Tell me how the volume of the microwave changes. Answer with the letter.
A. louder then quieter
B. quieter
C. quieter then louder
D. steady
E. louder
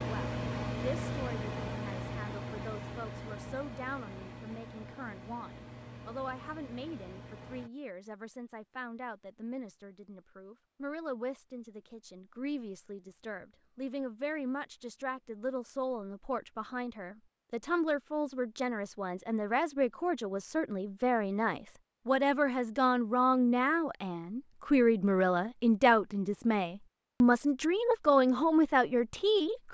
B.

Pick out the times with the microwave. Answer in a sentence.
The microwave can be heard from 0.0 to 7.7 s.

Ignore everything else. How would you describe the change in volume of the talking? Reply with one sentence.
The volume of the talking goes up.